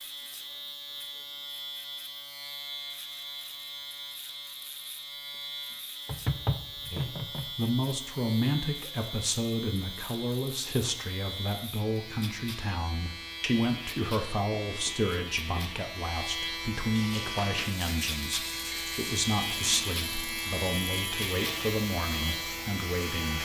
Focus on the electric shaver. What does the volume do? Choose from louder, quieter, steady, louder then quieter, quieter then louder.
louder.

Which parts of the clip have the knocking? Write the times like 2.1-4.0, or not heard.
6.0-7.5, 14.7-15.7.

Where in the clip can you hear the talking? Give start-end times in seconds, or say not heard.
6.9-23.4.